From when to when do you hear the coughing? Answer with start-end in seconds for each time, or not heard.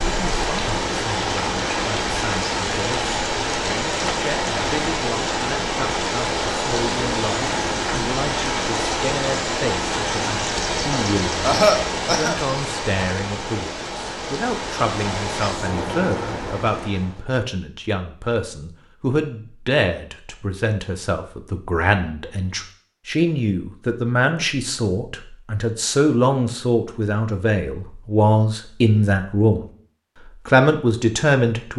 11.4-12.3.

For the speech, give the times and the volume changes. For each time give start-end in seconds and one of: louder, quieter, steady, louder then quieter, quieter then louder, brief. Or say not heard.
0.0-29.6 louder
30.4-31.7 brief.